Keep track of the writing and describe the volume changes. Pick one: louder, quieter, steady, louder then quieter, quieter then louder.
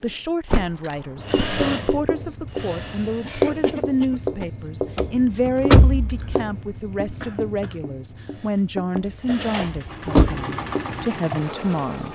louder then quieter.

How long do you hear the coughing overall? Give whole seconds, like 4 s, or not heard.
2 s.